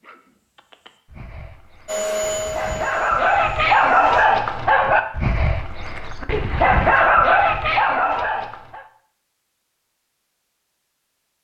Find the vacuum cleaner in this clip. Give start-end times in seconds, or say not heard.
1.9-4.2.